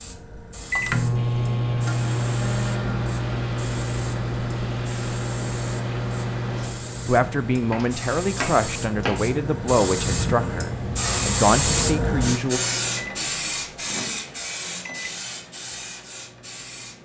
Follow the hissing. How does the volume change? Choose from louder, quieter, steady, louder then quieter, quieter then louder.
louder then quieter.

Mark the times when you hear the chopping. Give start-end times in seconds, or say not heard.
7.7-9.3.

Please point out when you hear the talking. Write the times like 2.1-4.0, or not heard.
6.6-12.6.